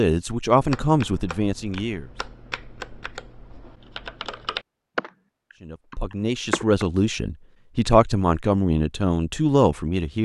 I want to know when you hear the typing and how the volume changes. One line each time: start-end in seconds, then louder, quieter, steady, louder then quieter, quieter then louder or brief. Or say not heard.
0.6-6.8 louder then quieter.